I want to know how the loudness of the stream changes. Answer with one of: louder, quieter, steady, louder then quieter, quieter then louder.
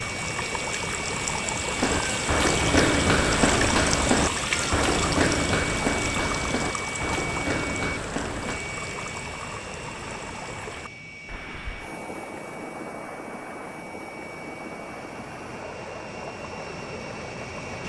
quieter.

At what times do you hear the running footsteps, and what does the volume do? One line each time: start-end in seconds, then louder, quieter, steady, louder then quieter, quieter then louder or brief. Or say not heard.
1.8-8.6 quieter.